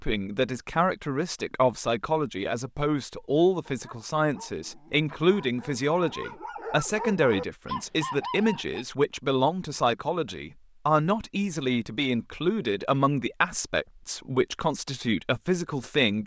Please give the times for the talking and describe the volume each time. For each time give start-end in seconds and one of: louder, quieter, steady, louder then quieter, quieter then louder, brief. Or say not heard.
0.0-16.2 steady.